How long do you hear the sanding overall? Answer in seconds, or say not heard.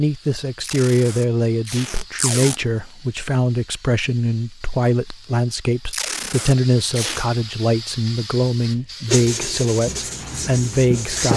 2 s.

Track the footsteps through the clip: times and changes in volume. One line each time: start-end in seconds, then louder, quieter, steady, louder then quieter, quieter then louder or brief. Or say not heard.
not heard.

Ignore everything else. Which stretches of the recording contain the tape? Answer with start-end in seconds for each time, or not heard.
0.6-2.6, 5.9-7.3.